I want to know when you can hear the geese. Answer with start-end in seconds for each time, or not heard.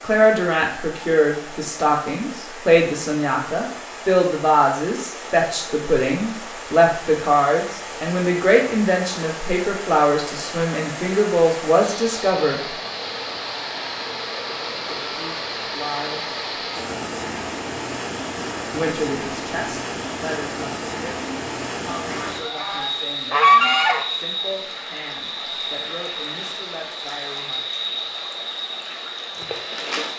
22.1-24.1.